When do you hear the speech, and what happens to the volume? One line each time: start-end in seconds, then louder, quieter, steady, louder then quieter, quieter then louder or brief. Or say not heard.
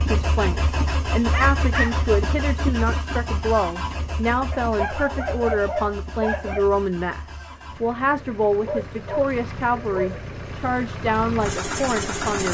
0.0-12.4 steady.